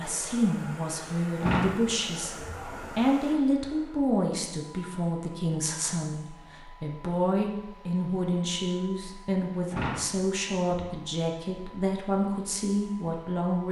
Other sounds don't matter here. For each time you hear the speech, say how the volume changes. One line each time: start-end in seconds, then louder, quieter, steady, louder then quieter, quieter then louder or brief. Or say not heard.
0.0-13.6 steady.